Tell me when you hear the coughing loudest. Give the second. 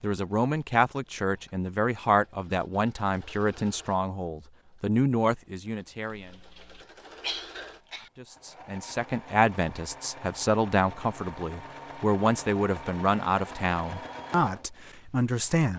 7 s.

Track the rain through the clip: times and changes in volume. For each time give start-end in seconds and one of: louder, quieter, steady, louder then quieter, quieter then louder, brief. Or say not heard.
not heard.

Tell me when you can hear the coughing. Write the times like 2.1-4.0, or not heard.
6.1-8.1.